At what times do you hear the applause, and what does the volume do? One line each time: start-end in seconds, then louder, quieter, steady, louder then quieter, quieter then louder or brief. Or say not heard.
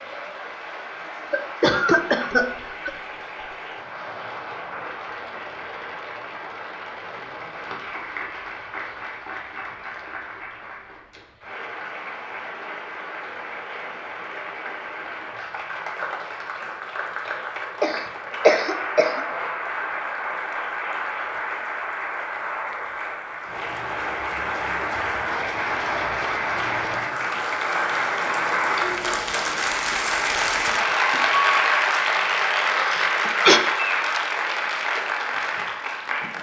0.0-36.3 louder.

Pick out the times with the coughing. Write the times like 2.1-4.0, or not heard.
1.3-2.9, 17.8-19.2, 32.8-33.6.